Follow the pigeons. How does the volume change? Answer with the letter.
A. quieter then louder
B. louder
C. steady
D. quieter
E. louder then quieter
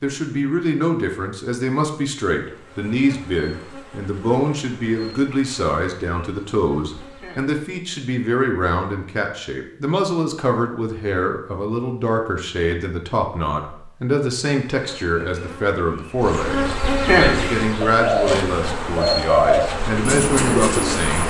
B.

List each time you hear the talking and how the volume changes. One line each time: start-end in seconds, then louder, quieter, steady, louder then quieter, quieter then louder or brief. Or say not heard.
0.0-21.2 steady.